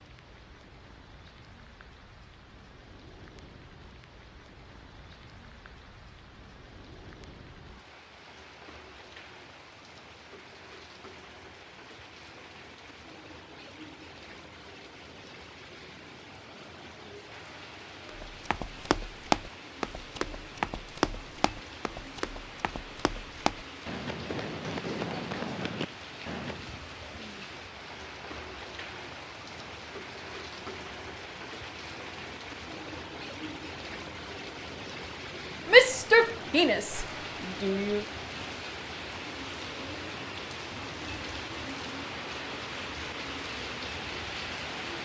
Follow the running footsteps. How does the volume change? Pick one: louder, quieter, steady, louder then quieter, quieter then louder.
quieter then louder.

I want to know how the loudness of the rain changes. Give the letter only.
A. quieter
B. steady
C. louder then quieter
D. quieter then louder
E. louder
E.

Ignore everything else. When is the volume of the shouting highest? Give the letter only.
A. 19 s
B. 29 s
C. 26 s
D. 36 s
D.